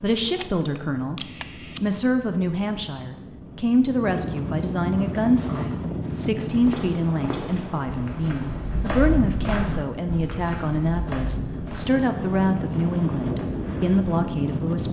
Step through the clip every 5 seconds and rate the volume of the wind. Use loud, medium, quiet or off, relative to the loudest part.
medium, loud, loud.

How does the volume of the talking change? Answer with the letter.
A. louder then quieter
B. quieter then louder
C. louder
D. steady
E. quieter
D.